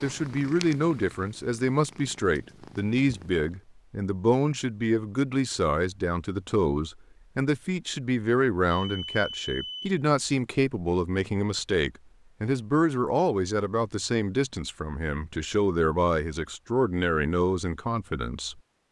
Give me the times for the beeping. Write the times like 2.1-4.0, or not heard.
8.7-9.9.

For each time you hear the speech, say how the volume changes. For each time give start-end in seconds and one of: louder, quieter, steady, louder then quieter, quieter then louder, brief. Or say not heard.
0.0-18.6 steady.